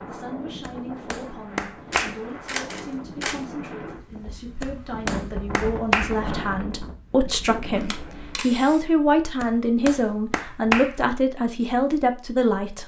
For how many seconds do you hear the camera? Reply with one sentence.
You can hear the camera for 3 seconds altogether.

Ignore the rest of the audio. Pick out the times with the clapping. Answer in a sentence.
The clapping can be heard from 0.7 to 2.2 s, from 4.6 to 6.2 s and from 9.4 to 10.9 s.